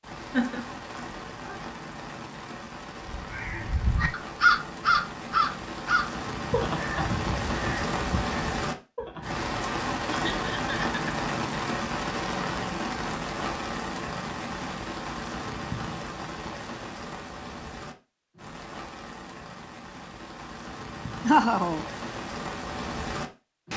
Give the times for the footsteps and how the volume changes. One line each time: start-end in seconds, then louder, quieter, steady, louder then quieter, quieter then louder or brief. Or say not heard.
not heard.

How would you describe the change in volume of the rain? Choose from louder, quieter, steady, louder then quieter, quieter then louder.
louder then quieter.